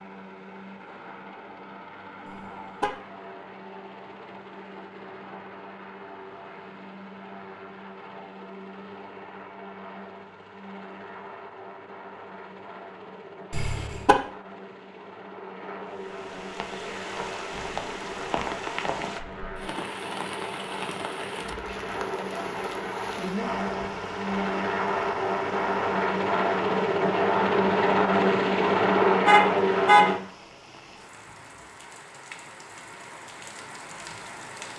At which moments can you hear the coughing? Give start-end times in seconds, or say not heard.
not heard.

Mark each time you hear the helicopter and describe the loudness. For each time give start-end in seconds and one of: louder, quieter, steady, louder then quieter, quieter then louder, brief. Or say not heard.
0.0-30.2 louder.